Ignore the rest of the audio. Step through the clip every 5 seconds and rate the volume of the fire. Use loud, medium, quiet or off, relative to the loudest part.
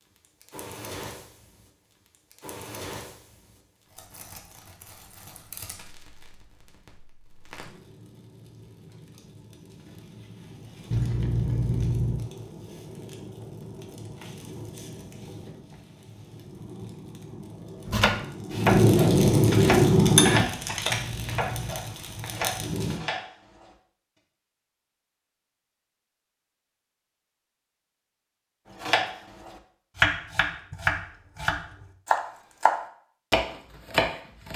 quiet, quiet, quiet, loud, loud, off, off.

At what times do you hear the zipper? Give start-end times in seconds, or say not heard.
10.9-12.2, 20.9-21.8.